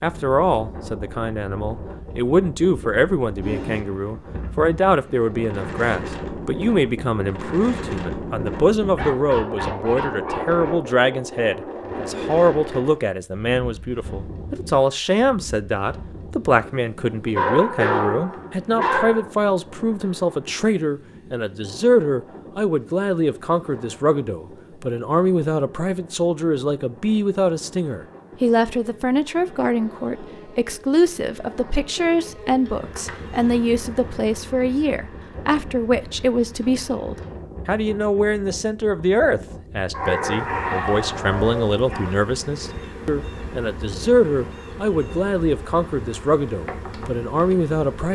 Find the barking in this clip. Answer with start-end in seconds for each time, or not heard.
8.9-10.8, 17.4-19.2, 39.9-42.1.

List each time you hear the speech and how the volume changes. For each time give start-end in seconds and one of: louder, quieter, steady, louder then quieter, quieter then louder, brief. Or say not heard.
0.0-48.1 steady.